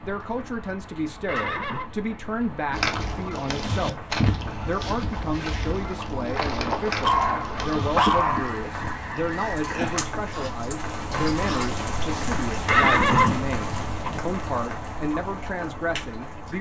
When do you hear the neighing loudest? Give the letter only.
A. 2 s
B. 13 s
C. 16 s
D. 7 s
B.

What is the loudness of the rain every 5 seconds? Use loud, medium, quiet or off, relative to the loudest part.
medium, medium, loud, medium.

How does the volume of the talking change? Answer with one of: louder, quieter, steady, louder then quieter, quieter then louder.
steady.